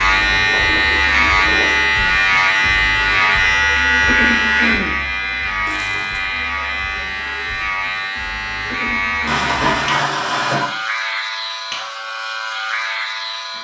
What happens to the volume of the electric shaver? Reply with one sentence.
The volume of the electric shaver goes down.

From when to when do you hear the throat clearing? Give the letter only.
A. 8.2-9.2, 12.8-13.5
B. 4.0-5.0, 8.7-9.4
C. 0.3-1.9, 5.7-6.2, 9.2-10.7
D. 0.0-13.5
B.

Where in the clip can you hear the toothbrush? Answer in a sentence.
The toothbrush can't be heard in this clip.